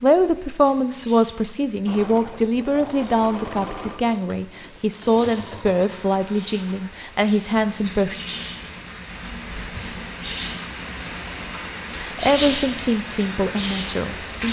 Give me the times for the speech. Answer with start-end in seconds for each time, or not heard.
0.0-8.2, 11.9-14.4.